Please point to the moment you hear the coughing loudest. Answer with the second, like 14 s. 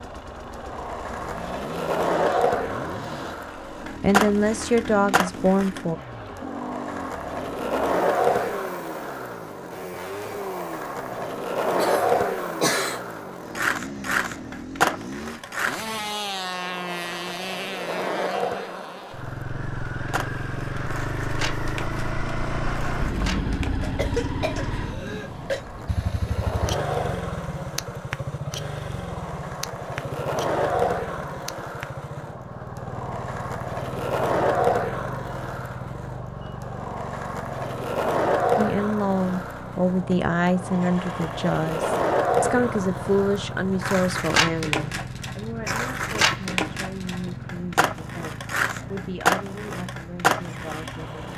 13 s.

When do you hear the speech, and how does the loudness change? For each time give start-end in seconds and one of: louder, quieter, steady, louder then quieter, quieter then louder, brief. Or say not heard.
4.0-6.0 brief
38.5-51.2 quieter.